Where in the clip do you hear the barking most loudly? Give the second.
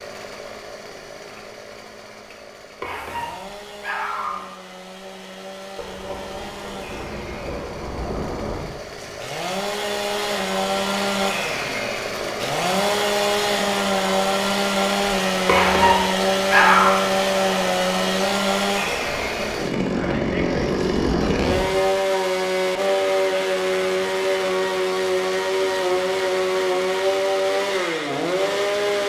17 s.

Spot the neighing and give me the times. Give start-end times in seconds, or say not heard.
not heard.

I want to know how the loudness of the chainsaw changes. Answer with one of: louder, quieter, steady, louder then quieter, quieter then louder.
louder.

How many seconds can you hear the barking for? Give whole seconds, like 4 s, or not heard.
3 s.